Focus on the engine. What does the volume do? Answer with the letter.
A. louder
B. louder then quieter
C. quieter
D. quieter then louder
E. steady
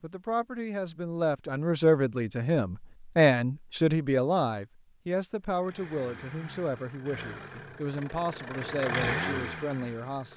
A.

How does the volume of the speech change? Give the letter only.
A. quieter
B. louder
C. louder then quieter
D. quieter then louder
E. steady
A.